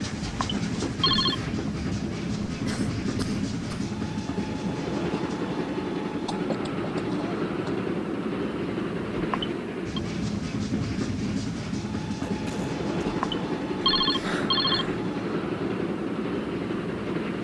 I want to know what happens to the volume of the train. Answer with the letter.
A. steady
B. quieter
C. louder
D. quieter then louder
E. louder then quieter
A.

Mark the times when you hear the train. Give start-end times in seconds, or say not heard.
0.0-17.4.